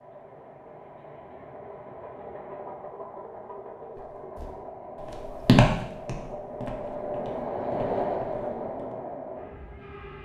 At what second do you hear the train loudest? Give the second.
8 s.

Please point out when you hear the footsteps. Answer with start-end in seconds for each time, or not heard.
4.0-8.9.